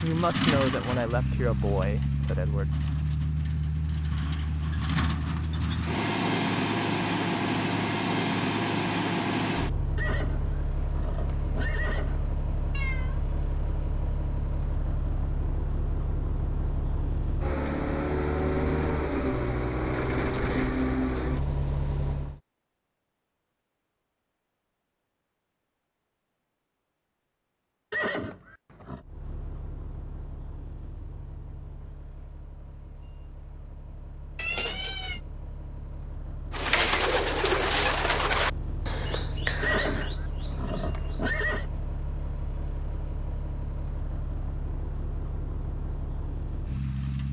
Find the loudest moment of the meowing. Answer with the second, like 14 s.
35 s.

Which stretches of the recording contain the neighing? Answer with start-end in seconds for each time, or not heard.
9.9-12.2, 27.9-29.1, 39.6-41.6.